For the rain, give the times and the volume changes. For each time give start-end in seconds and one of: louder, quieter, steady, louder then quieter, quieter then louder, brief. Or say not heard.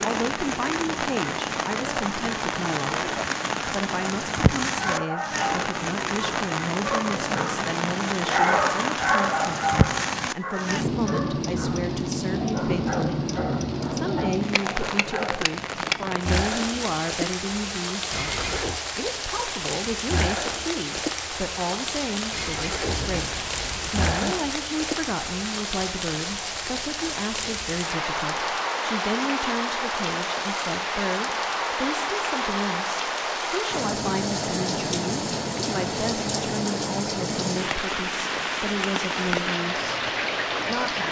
0.0-41.0 steady.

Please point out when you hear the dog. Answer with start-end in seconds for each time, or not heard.
4.8-15.4.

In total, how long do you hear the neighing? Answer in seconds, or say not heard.
3 s.